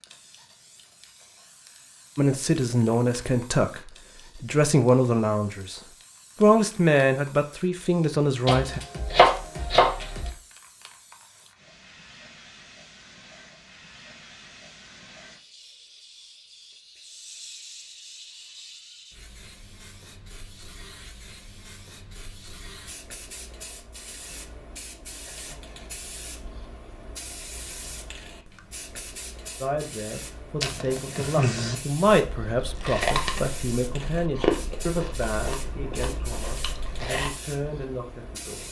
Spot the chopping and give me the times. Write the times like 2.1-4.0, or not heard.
8.4-10.3.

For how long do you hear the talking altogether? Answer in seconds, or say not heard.
15 s.